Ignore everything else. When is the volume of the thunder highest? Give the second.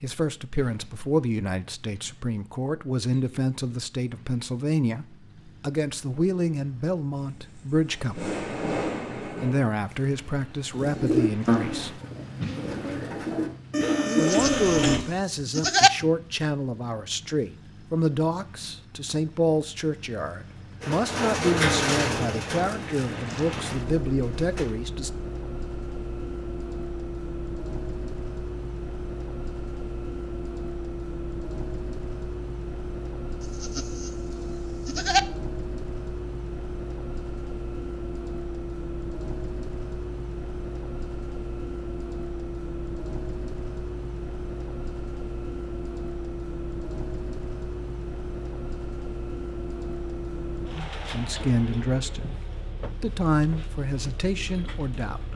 9 s.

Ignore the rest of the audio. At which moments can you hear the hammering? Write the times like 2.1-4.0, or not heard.
not heard.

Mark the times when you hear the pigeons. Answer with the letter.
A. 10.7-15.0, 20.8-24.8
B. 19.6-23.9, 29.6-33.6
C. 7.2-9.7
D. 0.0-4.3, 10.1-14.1
A.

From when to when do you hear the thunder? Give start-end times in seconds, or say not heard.
7.2-9.7.